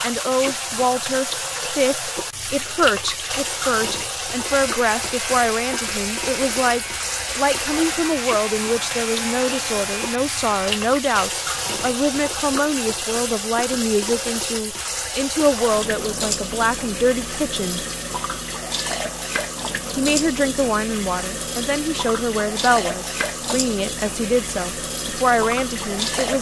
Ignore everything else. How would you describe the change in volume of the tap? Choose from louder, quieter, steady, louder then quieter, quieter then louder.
steady.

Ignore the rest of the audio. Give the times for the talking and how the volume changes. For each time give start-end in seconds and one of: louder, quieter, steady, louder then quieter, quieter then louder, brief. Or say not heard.
0.0-17.9 steady
19.9-26.3 steady.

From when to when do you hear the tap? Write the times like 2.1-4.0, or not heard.
0.0-26.3.